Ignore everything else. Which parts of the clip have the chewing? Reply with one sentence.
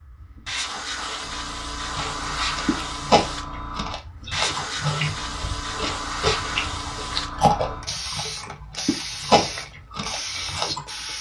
The chewing can be heard from 1.9 to 10.8 s.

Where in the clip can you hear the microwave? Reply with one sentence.
You can't hear the microwave here.